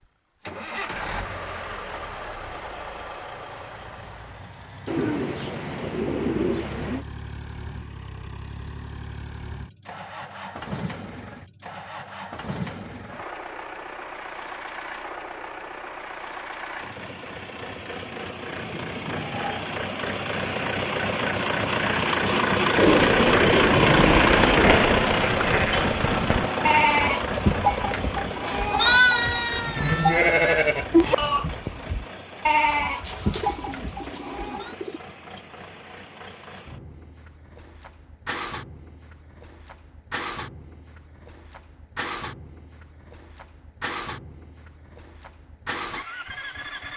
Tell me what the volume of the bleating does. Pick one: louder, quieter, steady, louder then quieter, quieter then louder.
louder then quieter.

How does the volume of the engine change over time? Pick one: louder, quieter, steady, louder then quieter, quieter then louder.
louder then quieter.